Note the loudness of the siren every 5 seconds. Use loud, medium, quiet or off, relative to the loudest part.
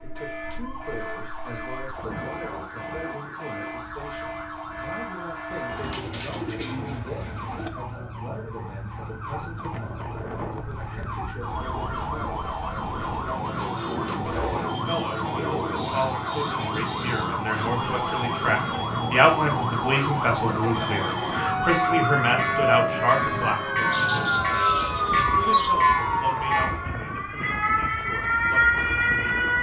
quiet, quiet, medium, medium, loud, loud.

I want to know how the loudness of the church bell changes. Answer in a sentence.
The volume of the church bell stays about the same.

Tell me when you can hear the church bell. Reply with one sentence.
You can hear the church bell from 21.5 to 26.9 s.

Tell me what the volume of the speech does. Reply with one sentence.
The loudness of the speech goes up, then down.